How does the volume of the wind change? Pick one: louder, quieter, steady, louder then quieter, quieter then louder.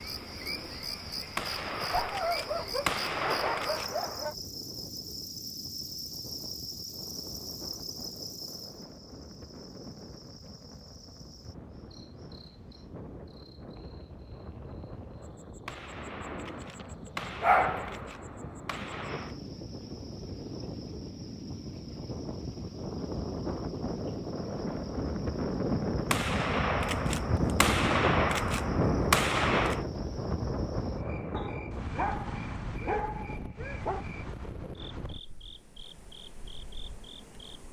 louder then quieter.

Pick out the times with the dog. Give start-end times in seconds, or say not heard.
1.9-4.3, 17.4-18.0, 31.3-34.0.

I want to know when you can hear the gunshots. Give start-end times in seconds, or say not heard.
1.4-4.3, 15.7-19.4, 26.1-29.9.